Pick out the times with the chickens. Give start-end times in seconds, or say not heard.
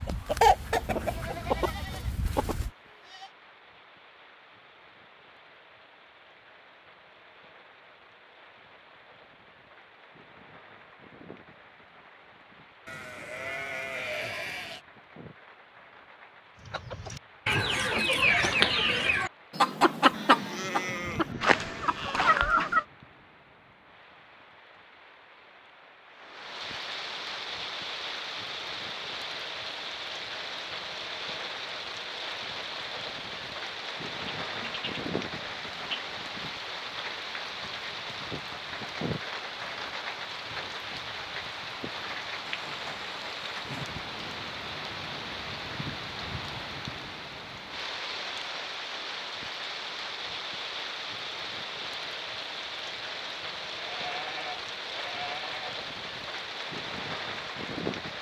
0.0-2.7, 16.6-22.9.